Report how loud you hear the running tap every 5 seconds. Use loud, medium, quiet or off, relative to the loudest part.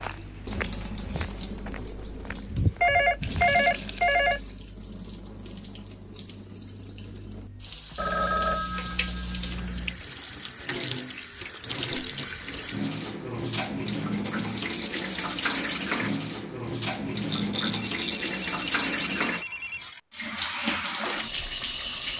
medium, medium, loud, loud, loud.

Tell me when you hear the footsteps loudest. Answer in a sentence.
The loudest moment of the footsteps is at 3 seconds.